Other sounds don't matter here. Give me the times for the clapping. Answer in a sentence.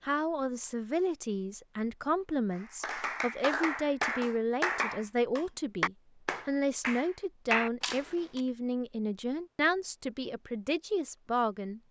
You can hear the clapping from 2.5 to 8.1 s.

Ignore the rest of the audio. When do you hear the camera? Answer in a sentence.
The camera can be heard from 7.8 to 8.4 s.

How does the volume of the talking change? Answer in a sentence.
The volume of the talking stays about the same.